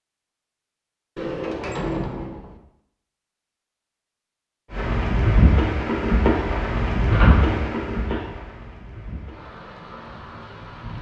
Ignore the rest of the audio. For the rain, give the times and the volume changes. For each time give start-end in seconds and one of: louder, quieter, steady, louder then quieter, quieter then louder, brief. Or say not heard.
4.7-10.9 quieter.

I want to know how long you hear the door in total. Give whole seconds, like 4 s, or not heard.
3 s.